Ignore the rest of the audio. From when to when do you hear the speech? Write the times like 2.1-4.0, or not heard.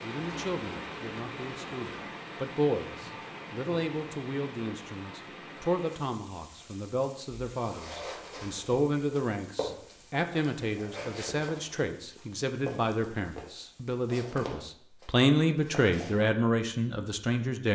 0.0-17.7.